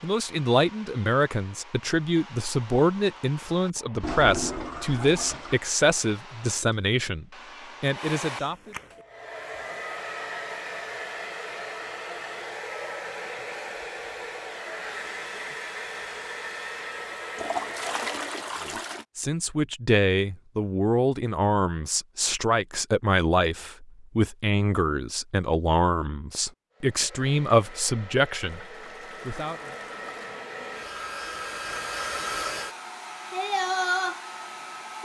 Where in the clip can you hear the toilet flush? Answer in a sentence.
You can hear the toilet flush from 4.0 to 5.6 s, from 17.4 to 19.1 s and from 28.6 to 30.4 s.